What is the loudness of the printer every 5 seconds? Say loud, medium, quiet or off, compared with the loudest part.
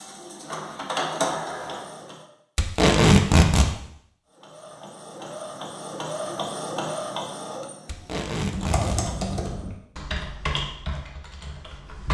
loud, loud, off.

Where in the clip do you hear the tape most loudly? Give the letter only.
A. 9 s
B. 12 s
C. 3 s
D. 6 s
C.